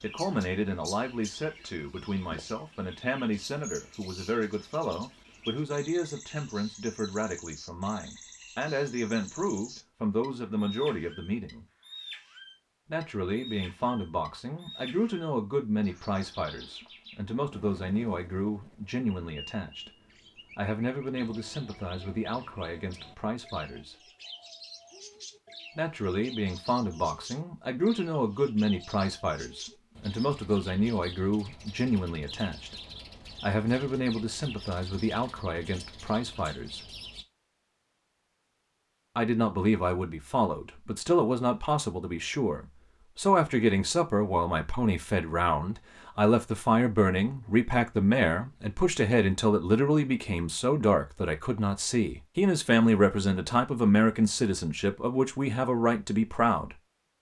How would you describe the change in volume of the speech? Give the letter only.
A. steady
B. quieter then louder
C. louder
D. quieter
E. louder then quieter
C.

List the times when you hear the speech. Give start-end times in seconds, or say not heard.
0.0-11.7, 12.8-19.9, 20.6-23.9, 25.8-32.8, 33.4-36.9, 39.1-56.8.